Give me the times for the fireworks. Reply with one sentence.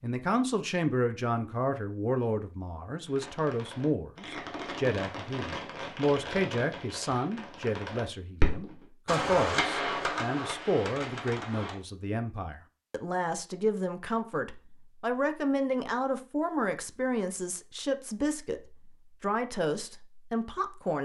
You can hear the fireworks from 3.0 to 11.8 s.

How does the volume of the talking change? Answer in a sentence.
The volume of the talking stays about the same.